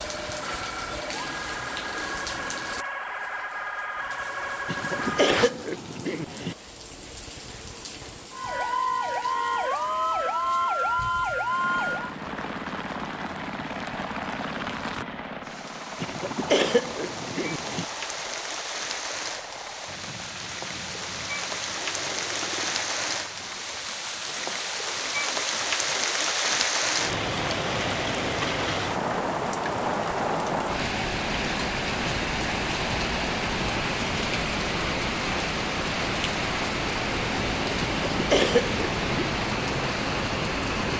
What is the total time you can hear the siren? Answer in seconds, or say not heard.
9 s.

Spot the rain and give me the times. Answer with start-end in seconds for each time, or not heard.
0.0-40.9.